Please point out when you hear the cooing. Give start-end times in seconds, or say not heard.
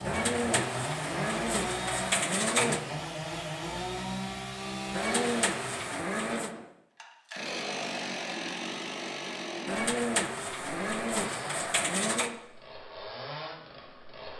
0.1-2.9, 4.9-6.5, 9.7-12.3.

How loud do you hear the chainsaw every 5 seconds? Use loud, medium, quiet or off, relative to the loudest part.
loud, loud, medium.